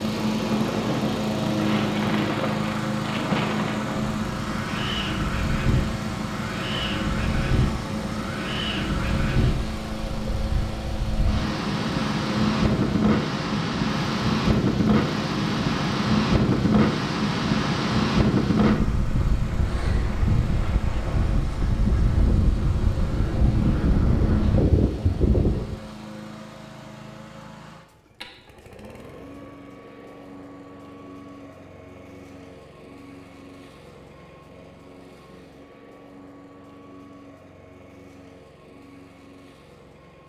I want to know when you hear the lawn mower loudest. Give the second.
2 s.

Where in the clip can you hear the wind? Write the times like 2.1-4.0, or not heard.
0.0-25.8.